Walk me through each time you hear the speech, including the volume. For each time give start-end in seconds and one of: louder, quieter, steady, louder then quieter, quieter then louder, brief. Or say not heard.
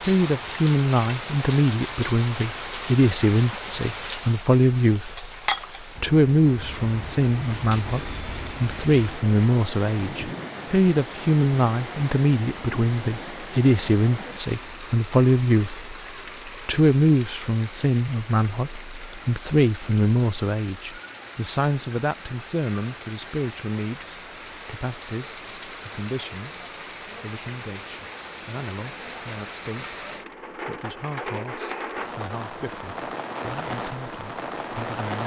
0.0-35.2 quieter.